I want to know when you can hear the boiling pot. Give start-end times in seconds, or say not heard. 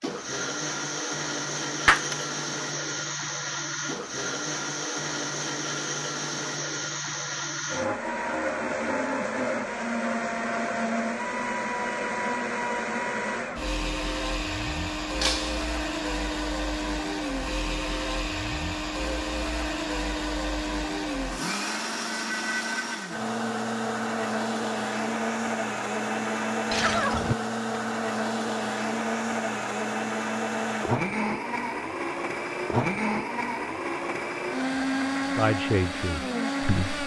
not heard.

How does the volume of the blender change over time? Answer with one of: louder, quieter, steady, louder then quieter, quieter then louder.
steady.